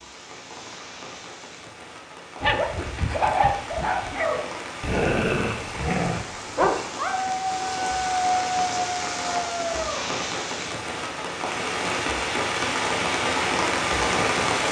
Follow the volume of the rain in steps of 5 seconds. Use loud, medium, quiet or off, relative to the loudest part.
quiet, medium, loud.